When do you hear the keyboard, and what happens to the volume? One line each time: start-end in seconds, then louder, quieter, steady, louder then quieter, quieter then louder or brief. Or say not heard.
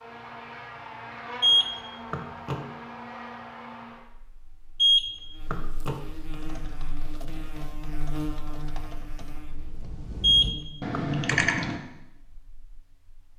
6.3-11.8 louder.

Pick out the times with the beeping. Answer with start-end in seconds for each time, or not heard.
1.4-2.6, 4.8-6.0, 10.2-11.4.